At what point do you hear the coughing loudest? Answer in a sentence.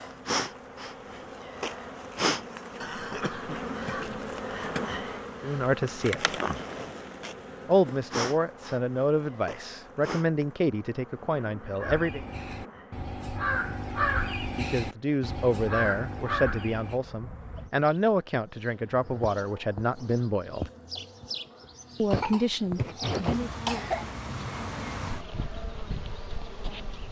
The loudest moment of the coughing is at 24 seconds.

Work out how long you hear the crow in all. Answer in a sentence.
The crow can be heard for 5 seconds in total.